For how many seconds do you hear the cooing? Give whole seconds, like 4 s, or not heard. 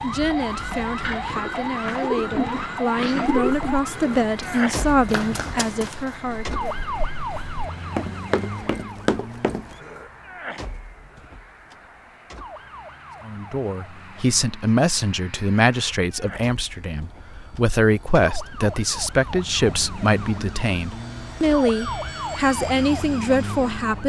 3 s.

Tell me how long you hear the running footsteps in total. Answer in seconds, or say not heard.
6 s.